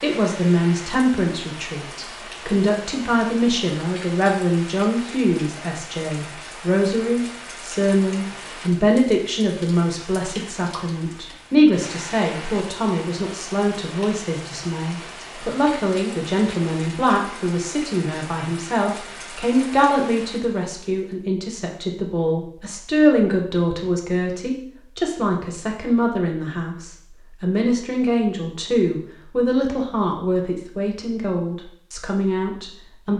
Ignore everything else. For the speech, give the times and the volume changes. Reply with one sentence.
You can hear the speech from 0.0 to 33.1 s, at a steady volume.